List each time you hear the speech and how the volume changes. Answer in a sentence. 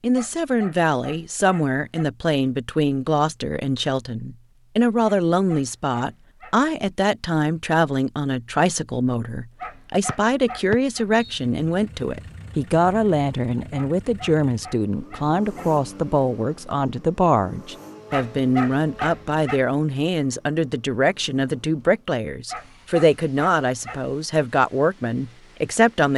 The speech can be heard from 0.0 to 26.1 s, at a steady volume.